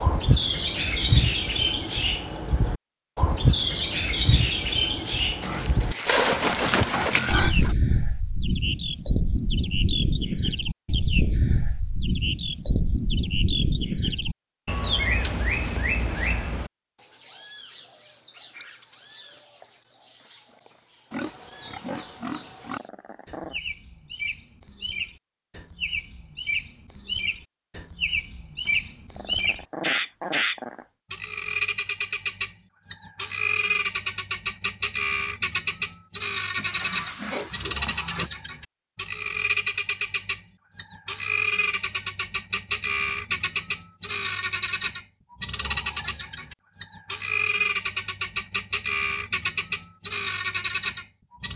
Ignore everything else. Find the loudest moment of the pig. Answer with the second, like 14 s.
7 s.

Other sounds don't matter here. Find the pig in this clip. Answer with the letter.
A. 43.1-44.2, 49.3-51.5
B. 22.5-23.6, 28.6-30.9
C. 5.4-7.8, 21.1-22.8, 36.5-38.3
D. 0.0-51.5
C.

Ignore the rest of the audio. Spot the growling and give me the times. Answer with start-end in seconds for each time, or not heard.
22.5-23.6, 28.6-30.9.